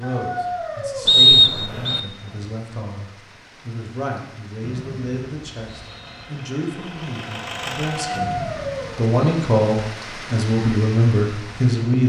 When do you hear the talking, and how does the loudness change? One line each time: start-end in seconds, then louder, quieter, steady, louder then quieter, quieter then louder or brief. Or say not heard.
0.0-12.0 louder.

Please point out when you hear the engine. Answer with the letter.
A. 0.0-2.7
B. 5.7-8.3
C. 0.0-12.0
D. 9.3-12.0
B.